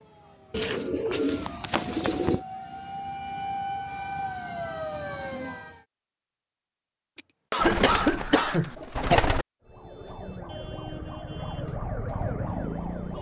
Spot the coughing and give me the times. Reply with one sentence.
The coughing can be heard from 7.2 to 9.2 s.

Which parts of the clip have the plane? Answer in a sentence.
The plane can't be heard in this clip.